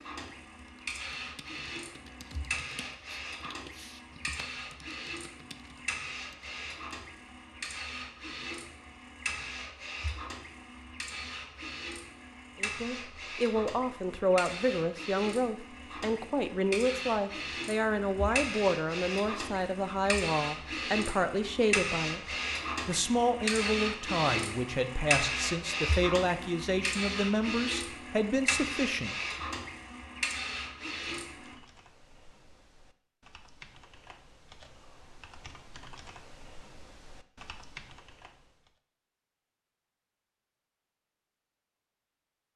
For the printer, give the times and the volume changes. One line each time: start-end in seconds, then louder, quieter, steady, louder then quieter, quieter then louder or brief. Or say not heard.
0.0-31.6 louder.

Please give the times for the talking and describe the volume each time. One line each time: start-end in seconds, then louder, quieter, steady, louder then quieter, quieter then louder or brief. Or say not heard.
12.6-29.1 steady.